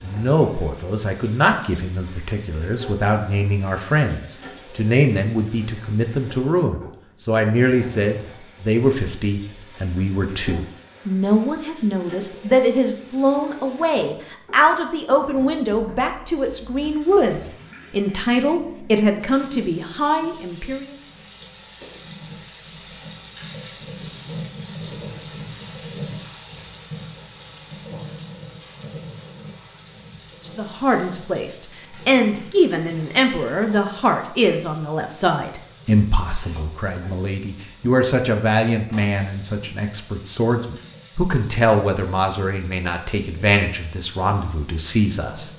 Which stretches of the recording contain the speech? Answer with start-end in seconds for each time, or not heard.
0.0-20.9, 30.4-45.5.